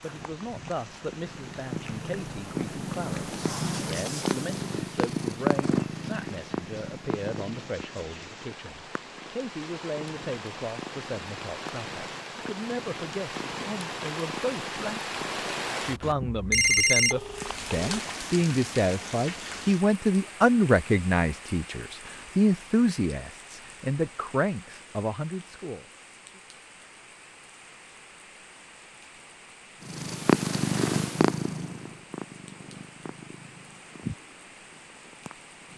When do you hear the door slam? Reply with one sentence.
You can't hear the door slam here.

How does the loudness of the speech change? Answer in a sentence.
The loudness of the speech goes up.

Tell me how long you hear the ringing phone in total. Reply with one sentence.
You can hear the ringing phone for 2 seconds altogether.